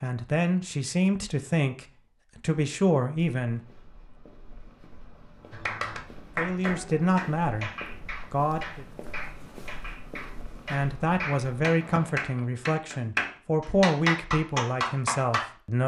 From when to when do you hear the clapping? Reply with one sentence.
You can hear the clapping from 5.5 to 15.4 s.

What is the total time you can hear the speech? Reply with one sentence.
The speech can be heard for 11 seconds in total.